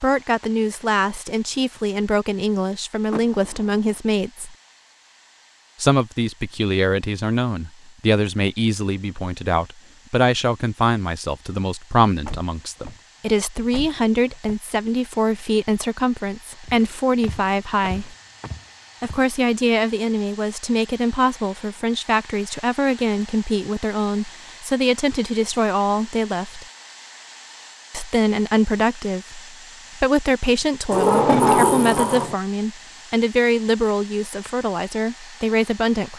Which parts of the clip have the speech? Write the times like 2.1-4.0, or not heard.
0.0-4.5, 5.8-18.1, 19.0-26.6, 27.9-36.1.